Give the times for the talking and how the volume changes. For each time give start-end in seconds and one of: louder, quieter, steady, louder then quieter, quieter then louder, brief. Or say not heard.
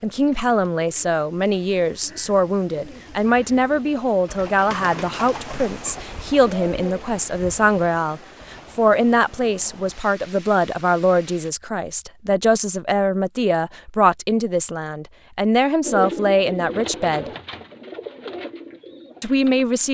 0.0-17.2 steady
19.2-19.9 brief.